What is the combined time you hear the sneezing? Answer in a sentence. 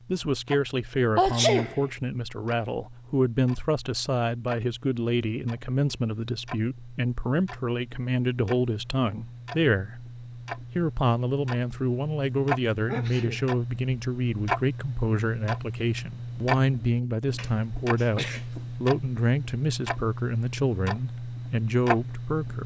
You can hear the sneezing for 3 seconds altogether.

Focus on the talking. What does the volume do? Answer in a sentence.
The volume of the talking stays about the same.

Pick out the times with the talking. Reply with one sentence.
You can hear the talking from 0.1 to 22.6 s.